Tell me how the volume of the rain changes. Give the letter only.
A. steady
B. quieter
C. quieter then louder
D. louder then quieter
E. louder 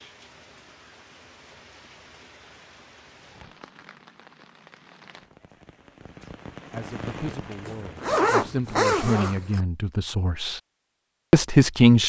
E.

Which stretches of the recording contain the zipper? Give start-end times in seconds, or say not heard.
7.7-9.7.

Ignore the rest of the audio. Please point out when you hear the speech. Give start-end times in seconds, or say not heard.
6.7-10.6, 11.3-12.0.